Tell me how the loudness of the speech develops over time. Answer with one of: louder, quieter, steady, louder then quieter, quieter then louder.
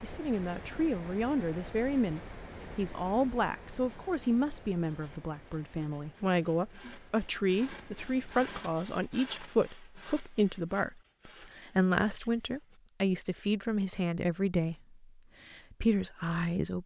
steady.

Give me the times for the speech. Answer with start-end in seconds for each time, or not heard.
0.0-16.8.